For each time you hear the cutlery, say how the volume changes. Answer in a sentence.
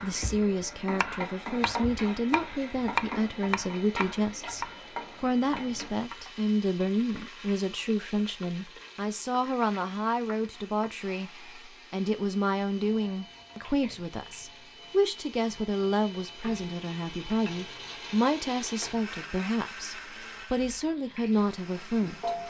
The cutlery can't be heard in this clip.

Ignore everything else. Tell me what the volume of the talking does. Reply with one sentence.
The volume of the talking stays about the same.